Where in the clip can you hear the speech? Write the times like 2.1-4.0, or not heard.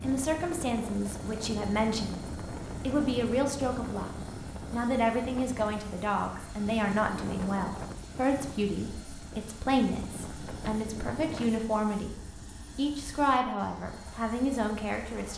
0.0-4.1, 4.7-12.2, 12.8-15.3.